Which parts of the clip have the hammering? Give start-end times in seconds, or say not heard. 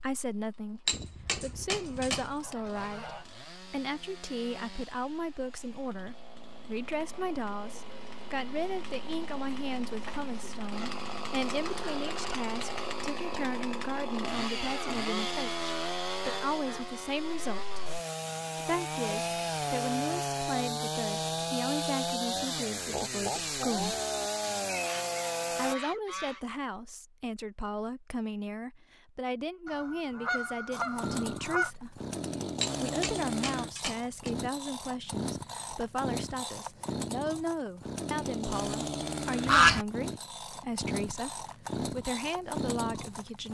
0.8-2.5, 32.6-34.3.